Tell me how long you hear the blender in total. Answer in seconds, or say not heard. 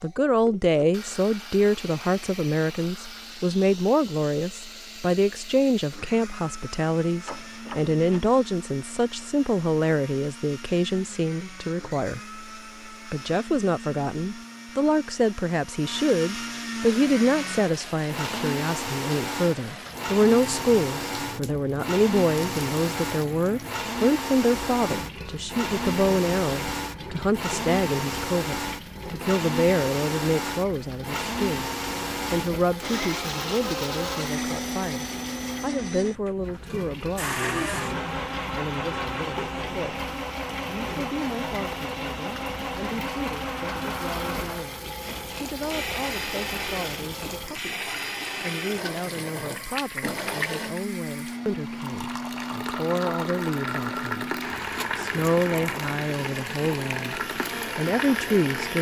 59 s.